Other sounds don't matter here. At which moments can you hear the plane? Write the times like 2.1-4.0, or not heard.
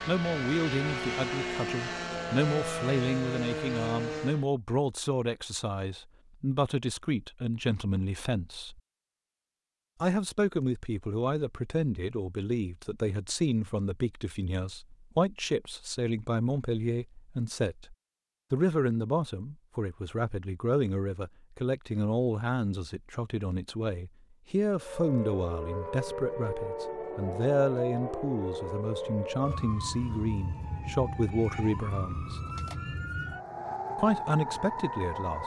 0.0-4.5.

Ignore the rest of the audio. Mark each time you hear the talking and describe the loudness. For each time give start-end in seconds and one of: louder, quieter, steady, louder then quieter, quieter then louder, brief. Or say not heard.
0.1-8.8 steady
10.0-32.4 steady
34.0-35.4 brief.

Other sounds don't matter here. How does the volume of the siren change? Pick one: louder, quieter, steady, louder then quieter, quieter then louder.
steady.